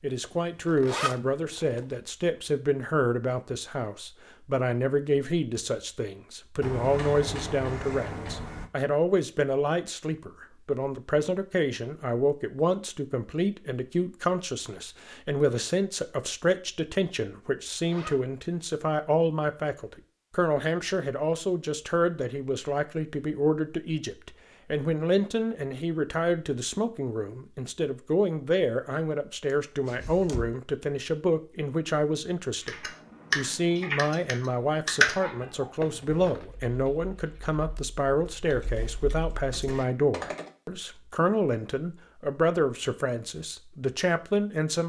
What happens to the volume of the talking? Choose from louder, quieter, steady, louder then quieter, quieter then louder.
steady.